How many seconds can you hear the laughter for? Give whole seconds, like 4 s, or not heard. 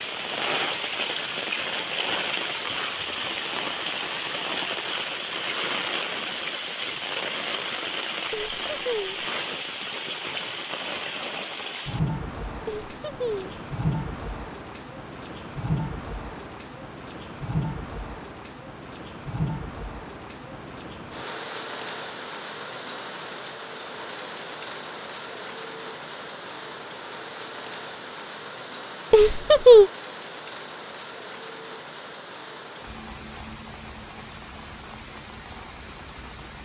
3 s.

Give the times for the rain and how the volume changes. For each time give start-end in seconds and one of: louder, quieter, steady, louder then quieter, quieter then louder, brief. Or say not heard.
0.0-36.6 quieter.